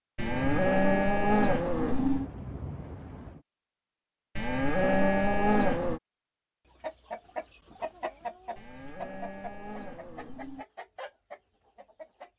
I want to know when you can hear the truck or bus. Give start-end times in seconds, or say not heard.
not heard.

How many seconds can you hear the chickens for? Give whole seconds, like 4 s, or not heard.
6 s.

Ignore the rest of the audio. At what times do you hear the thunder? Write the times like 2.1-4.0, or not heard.
0.1-3.4.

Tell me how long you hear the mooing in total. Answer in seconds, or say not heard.
6 s.